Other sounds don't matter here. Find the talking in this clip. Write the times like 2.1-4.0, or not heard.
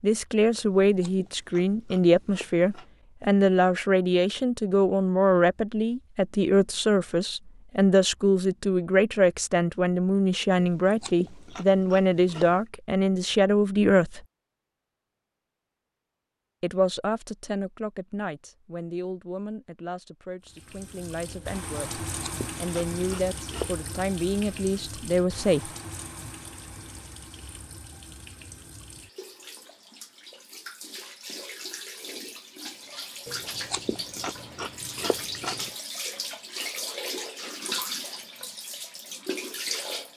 0.0-14.2, 16.6-25.7.